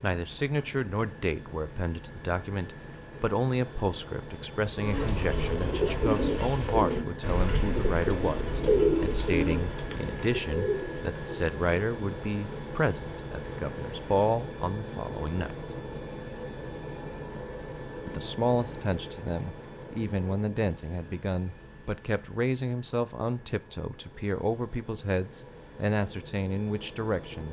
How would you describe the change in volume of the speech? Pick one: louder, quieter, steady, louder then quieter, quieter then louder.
steady.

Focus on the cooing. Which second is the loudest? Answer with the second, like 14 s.
9 s.